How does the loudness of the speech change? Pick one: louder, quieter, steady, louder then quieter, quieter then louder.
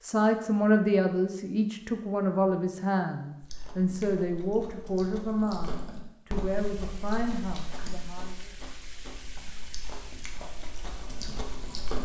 quieter.